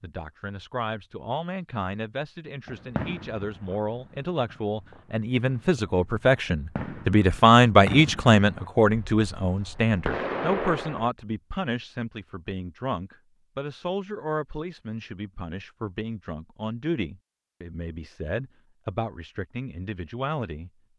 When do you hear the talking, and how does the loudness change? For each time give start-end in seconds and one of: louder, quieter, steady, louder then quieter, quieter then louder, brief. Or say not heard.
0.0-20.7 louder then quieter.